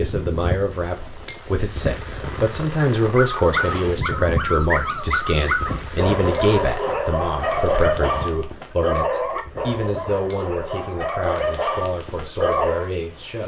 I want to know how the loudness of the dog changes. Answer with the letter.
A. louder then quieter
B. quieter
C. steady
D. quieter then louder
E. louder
C.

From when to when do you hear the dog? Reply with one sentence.
The dog can be heard from 3.0 to 12.9 s.